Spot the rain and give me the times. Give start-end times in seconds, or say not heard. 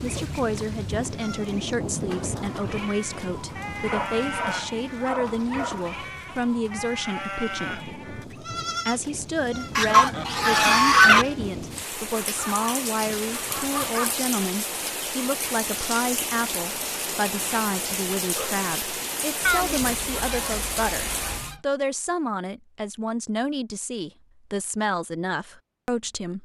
0.0-21.6.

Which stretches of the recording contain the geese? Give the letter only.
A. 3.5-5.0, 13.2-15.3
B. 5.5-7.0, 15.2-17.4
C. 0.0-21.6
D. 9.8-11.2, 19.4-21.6
D.